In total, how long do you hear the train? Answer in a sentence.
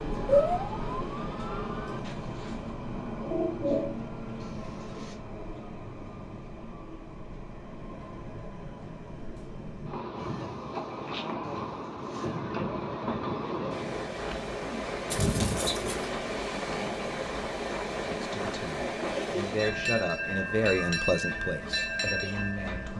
The train can be heard for 23 seconds in total.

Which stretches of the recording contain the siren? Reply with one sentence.
You can hear the siren from 0.1 to 2.0 s.